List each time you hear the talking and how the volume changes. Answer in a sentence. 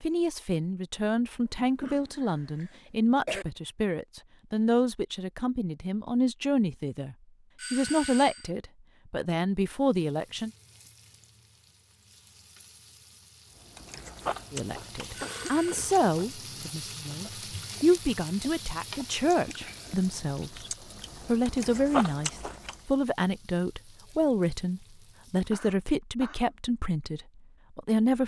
The talking can be heard from 0.0 to 10.5 s, at a steady volume; and from 14.5 to 28.2 s, at a steady volume.